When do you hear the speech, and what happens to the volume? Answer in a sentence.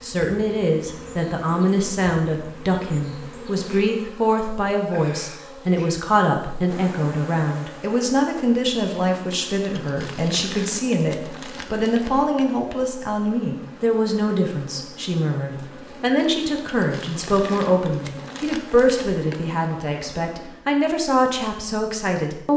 The speech can be heard from 0.0 to 22.5 s, at a steady volume.